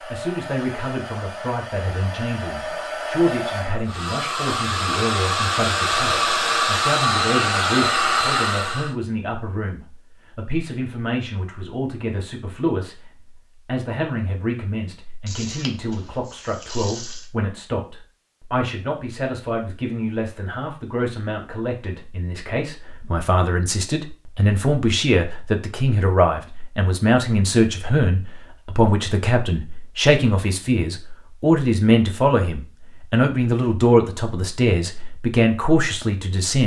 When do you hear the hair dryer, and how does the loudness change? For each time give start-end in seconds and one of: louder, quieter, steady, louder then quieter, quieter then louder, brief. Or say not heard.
0.0-8.9 louder.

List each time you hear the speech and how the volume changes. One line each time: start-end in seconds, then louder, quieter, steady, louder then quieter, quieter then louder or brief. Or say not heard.
0.0-36.6 louder.